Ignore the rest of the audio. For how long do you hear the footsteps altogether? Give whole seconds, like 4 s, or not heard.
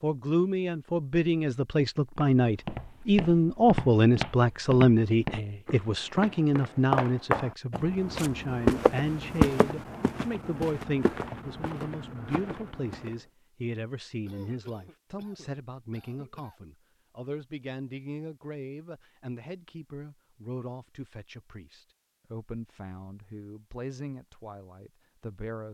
11 s.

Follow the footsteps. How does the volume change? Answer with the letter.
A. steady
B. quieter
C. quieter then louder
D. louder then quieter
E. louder
D.